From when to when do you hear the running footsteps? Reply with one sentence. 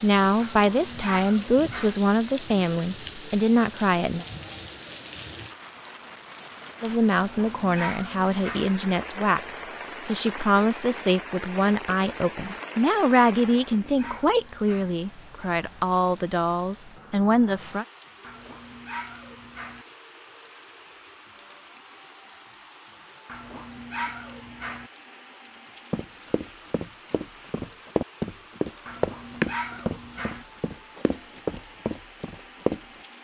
You can hear the running footsteps from 25.9 to 32.8 s.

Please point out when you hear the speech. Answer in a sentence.
The speech can be heard from 0.0 to 4.2 s and from 6.8 to 17.9 s.